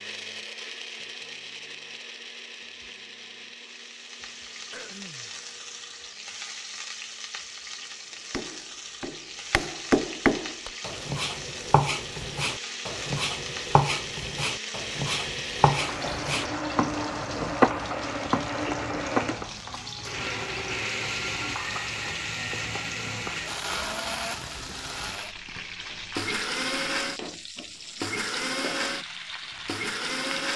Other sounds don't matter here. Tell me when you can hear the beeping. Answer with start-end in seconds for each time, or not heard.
not heard.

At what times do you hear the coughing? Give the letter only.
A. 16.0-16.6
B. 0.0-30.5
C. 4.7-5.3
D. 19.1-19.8
C.